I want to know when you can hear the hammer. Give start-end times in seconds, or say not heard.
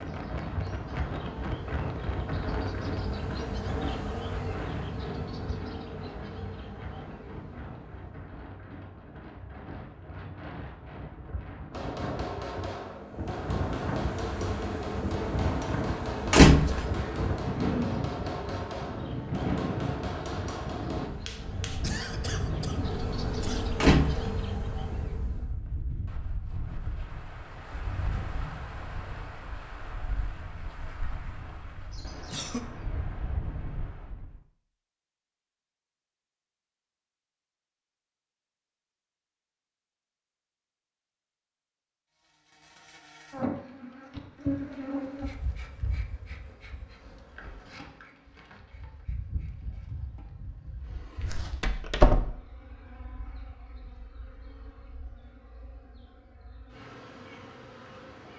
11.7-21.8.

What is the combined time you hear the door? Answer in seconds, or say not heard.
2 s.